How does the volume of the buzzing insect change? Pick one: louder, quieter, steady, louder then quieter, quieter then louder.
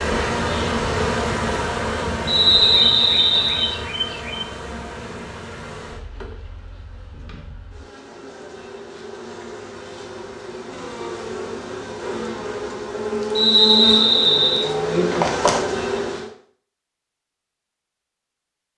quieter then louder.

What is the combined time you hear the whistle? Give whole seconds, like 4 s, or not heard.
3 s.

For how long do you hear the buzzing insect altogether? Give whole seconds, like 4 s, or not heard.
16 s.